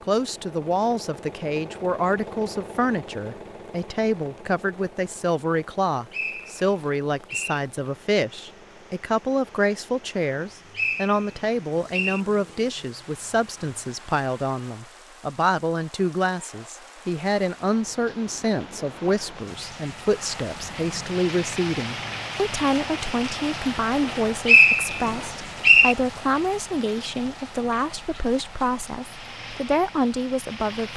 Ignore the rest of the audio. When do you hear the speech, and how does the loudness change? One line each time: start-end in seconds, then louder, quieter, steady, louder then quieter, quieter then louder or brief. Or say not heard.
0.0-30.9 steady.